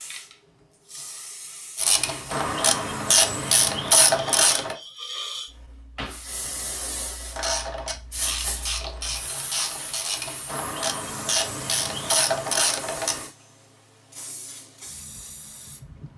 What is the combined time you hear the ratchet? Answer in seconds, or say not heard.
9 s.